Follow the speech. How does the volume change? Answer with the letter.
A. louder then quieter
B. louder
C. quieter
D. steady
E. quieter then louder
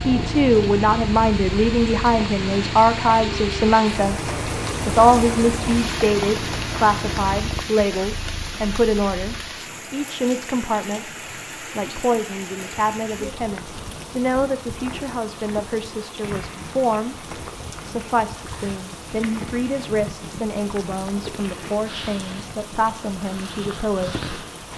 C.